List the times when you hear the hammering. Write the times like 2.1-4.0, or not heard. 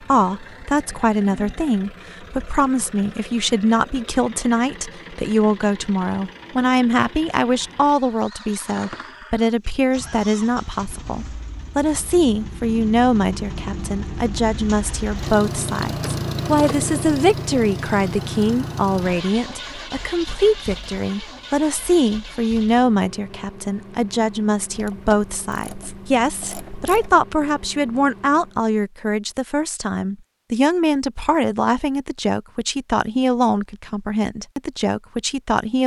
not heard.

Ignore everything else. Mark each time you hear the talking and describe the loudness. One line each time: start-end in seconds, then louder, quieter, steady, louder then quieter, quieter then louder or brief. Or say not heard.
0.1-35.8 steady.